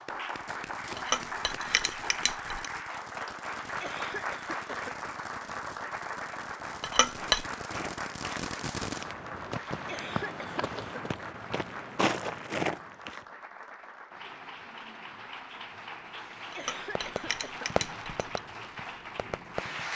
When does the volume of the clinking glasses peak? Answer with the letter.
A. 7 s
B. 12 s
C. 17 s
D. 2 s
A.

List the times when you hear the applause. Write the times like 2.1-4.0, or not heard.
0.0-19.9.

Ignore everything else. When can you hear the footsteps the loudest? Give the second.
12 s.